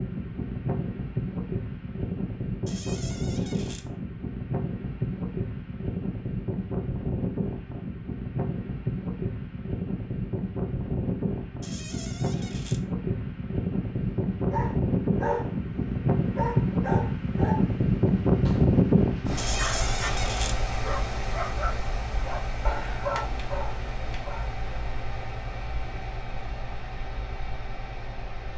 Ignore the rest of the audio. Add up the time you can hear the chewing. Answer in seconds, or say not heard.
not heard.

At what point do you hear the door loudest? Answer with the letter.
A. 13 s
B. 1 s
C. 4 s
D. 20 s
D.